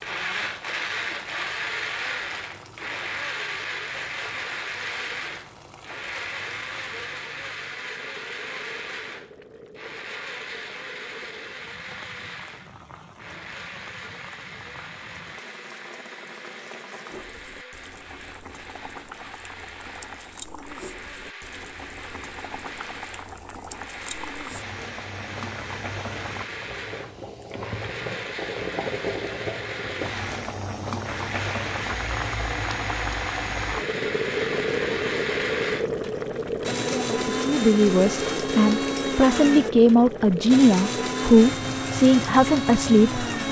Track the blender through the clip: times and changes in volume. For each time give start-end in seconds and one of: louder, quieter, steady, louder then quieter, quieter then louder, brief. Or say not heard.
0.0-43.4 quieter then louder.